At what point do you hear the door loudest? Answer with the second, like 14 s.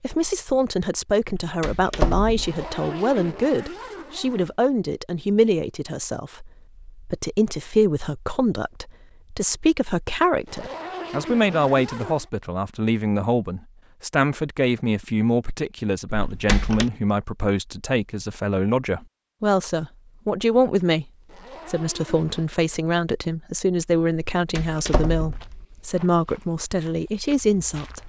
2 s.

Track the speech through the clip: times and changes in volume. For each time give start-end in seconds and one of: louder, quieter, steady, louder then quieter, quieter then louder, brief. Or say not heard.
0.0-21.1 steady
21.6-28.0 steady.